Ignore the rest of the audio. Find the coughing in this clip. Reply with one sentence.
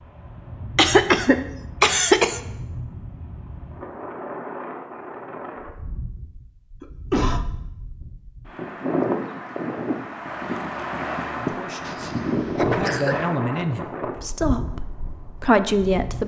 The coughing can be heard from 0.8 to 2.4 s, from 6.8 to 7.5 s and from 11.8 to 13.2 s.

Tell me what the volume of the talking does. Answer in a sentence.
The loudness of the talking goes up.